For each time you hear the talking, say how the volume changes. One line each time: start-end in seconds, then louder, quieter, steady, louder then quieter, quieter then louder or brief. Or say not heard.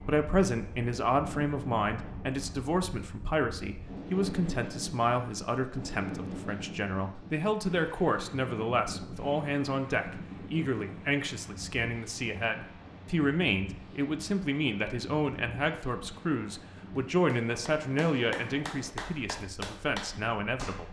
0.0-20.8 steady.